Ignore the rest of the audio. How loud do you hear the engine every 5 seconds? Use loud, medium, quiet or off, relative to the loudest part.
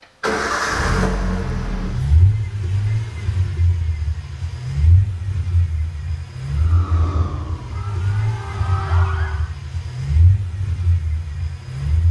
loud, medium, medium.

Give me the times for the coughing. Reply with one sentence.
You can't hear the coughing here.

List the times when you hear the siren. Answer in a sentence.
The siren can be heard from 6.5 to 9.5 s.